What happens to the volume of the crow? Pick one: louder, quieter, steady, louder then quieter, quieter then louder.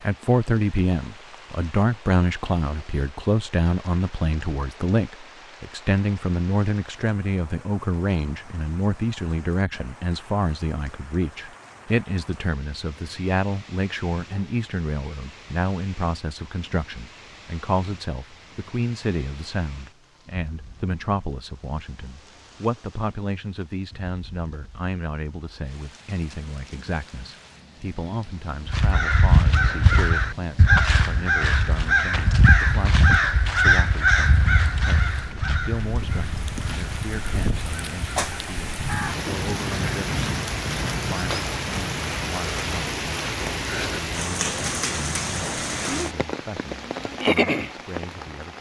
quieter.